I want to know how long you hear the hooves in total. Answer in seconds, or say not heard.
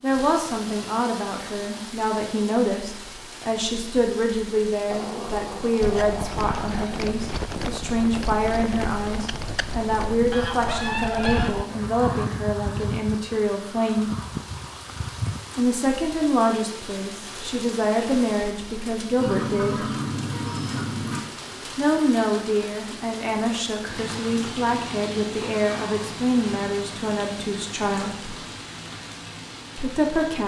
10 s.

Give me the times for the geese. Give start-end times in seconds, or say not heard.
10.3-12.2, 19.2-21.2.